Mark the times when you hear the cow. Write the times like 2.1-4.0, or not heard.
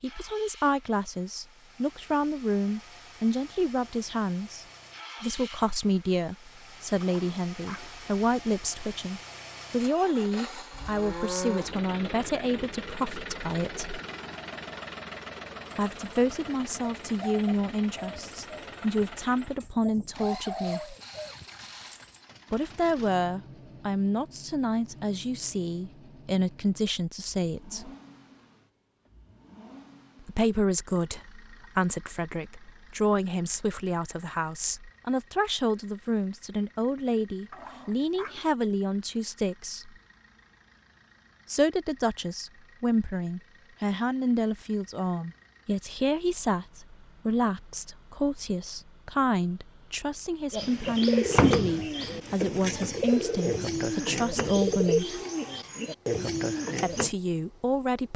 10.7-11.8.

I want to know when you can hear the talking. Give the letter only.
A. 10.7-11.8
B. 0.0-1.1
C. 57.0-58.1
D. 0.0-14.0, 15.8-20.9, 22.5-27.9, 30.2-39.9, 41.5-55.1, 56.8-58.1
D.